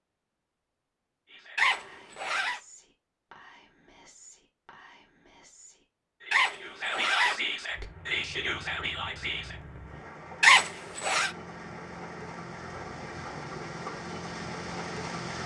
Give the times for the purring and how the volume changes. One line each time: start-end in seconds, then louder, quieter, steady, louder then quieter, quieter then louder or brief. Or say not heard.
not heard.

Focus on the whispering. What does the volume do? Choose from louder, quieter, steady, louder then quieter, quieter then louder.
louder.